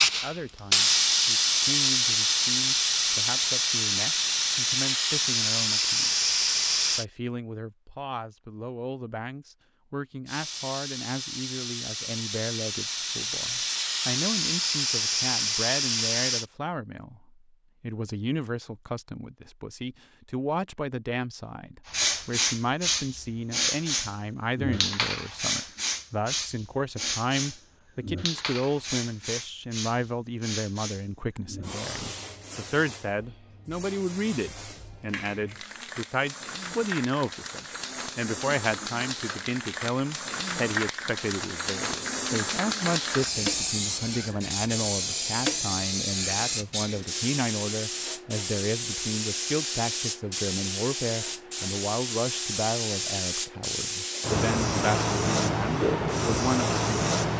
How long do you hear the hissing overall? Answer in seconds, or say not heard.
49 s.